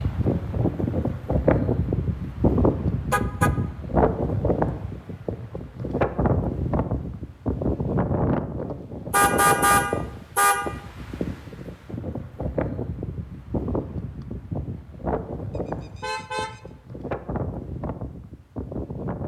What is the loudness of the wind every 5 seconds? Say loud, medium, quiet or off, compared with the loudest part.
loud, loud, medium, medium.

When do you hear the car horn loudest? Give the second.
10 s.